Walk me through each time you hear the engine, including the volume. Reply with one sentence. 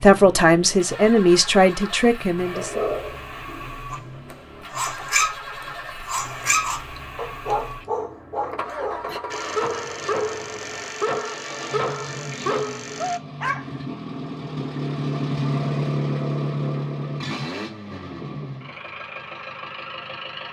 The engine can be heard from 0.0 to 20.4 s, getting louder.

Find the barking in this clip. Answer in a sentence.
You can hear the barking from 2.5 to 13.7 s.